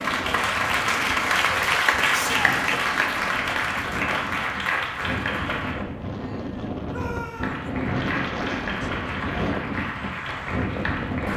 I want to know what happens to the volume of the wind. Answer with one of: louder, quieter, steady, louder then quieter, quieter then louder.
louder.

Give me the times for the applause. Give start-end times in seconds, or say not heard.
0.0-5.8, 7.3-11.3.